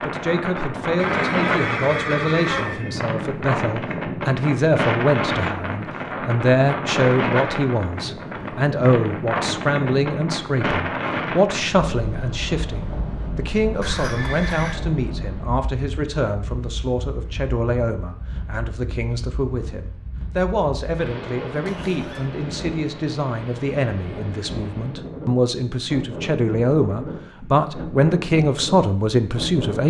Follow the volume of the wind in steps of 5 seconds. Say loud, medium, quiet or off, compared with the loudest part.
loud, loud, loud, quiet, medium, medium.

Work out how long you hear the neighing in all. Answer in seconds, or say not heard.
4 s.